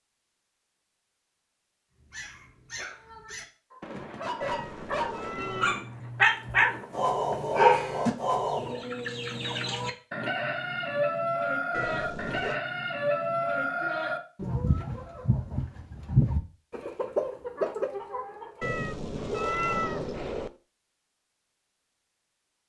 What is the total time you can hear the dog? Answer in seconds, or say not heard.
7 s.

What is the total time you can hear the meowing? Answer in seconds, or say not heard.
4 s.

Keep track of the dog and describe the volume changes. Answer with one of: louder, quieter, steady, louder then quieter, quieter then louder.
louder.